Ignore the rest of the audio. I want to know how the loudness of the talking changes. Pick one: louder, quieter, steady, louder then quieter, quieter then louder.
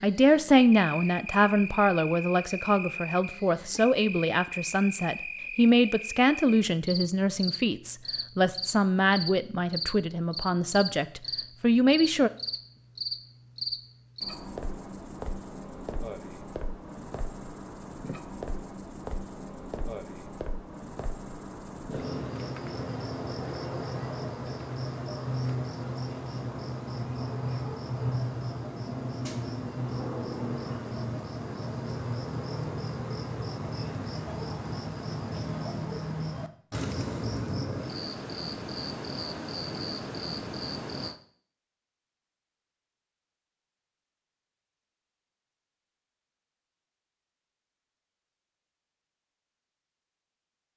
steady.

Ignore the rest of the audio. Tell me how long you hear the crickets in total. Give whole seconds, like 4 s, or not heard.
41 s.